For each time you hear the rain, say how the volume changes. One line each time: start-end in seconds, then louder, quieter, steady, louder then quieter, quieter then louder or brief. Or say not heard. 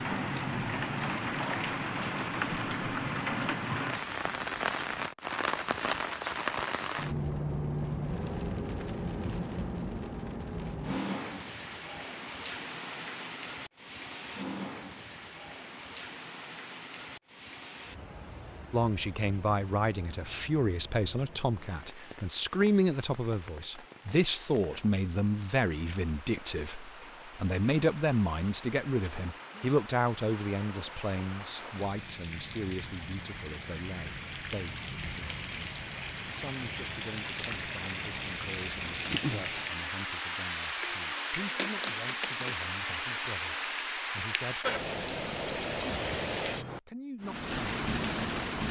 0.0-48.6 quieter then louder.